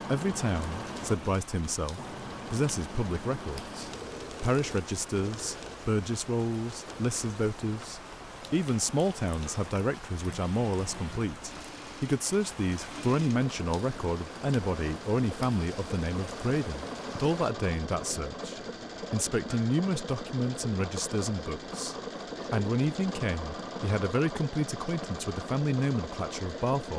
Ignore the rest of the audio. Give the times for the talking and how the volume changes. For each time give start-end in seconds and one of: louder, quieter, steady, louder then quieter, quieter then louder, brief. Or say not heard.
0.1-26.9 steady.